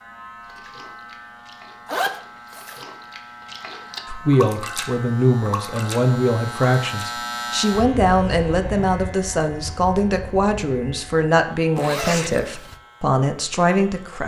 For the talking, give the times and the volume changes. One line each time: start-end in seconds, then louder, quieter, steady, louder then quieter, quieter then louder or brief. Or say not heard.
4.0-14.2 steady.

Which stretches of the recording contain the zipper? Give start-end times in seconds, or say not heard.
1.9-2.8, 11.8-12.8.